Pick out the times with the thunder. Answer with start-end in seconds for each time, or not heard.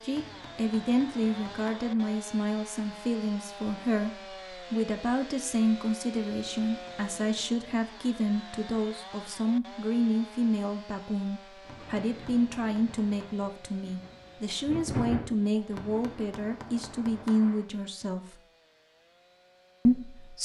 11.8-15.3.